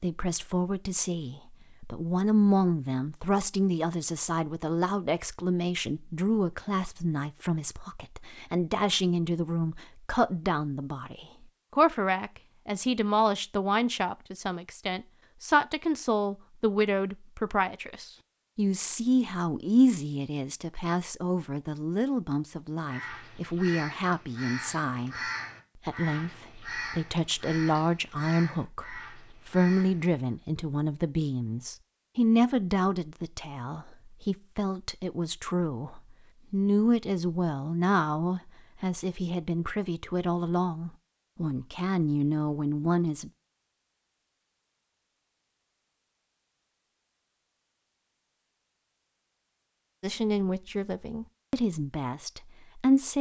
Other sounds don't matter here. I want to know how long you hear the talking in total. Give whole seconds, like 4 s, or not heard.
46 s.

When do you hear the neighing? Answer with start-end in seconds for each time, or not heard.
not heard.